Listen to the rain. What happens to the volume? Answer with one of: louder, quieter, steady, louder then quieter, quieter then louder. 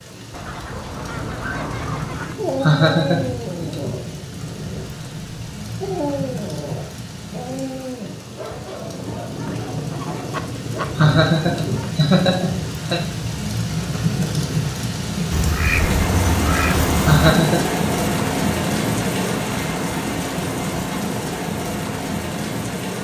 louder.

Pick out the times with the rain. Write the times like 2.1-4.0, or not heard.
0.0-22.9.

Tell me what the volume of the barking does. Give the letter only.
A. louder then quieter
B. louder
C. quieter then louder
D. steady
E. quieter
E.